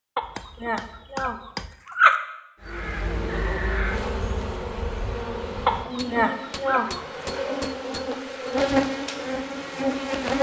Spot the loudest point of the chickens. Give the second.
2 s.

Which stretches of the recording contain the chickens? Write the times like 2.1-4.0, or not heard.
0.1-2.1, 5.7-7.2.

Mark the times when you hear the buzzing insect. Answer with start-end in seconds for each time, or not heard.
2.6-10.3.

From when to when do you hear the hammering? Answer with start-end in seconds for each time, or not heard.
0.2-1.8, 6.0-8.6.